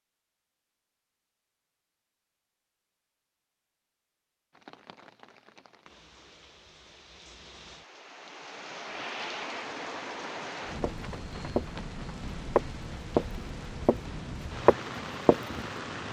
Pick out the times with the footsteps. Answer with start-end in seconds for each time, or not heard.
10.8-11.7, 12.6-14.0, 14.7-15.6.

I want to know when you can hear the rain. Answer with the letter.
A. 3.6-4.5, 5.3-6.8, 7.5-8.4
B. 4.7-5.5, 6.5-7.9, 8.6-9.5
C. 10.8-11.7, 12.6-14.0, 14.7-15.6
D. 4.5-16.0
D.